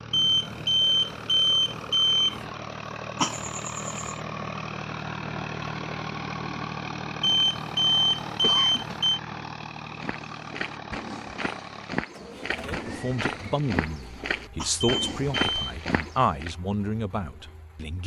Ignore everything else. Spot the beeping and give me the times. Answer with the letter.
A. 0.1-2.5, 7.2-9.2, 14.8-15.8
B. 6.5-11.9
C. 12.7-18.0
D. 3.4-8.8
A.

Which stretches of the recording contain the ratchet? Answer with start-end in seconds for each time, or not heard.
not heard.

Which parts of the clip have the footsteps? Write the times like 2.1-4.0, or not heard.
9.9-16.6.